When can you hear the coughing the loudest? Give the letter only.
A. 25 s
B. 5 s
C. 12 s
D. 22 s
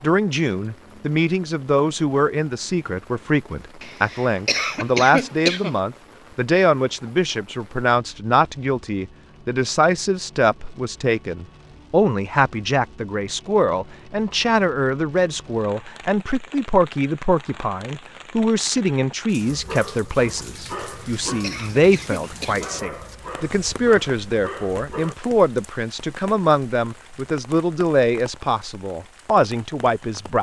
B.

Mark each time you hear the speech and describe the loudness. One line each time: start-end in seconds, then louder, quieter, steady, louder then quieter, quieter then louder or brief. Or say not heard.
0.0-30.3 steady.